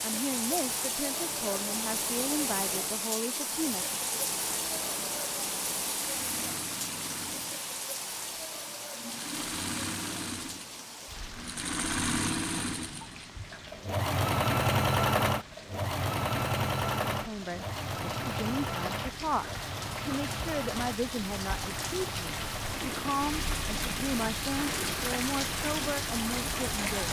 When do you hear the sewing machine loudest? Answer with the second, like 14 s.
15 s.